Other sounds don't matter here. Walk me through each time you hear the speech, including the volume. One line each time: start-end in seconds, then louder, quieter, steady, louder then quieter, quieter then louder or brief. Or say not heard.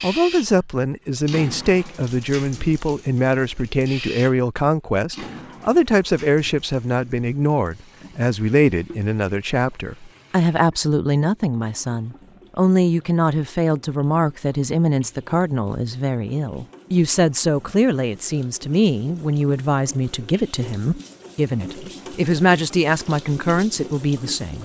0.0-24.6 steady.